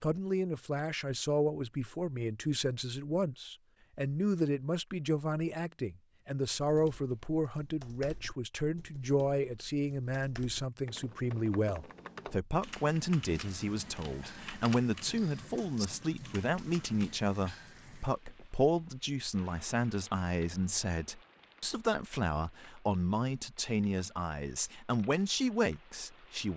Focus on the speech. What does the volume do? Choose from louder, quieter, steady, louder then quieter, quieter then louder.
steady.